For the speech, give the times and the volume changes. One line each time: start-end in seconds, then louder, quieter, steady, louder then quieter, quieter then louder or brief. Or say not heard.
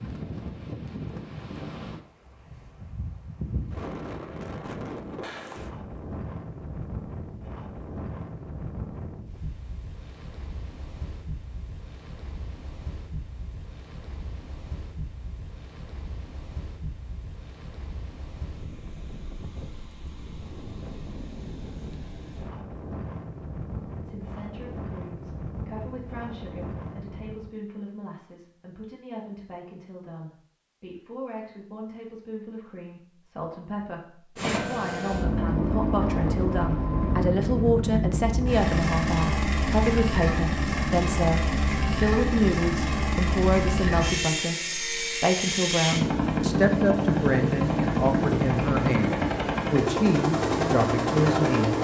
24.1-51.7 louder.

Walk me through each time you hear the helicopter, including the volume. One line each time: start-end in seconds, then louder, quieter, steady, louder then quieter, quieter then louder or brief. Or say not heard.
34.4-51.7 steady.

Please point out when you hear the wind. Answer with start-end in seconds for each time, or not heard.
0.0-27.6.